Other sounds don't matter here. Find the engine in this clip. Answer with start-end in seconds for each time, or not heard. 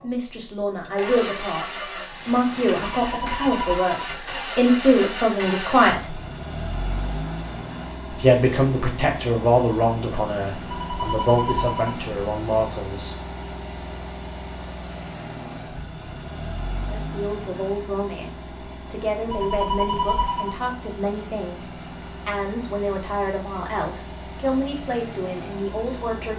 0.0-26.3.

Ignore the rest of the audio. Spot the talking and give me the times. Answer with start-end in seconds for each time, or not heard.
0.0-6.2, 8.1-13.2, 16.9-26.3.